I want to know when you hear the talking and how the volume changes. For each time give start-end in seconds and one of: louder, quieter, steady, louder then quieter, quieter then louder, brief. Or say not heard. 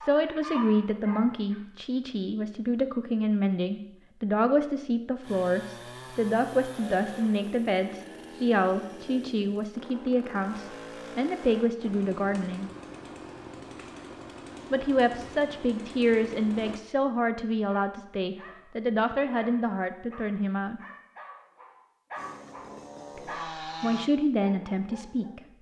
0.0-12.7 steady
14.7-20.8 steady
23.1-25.4 brief.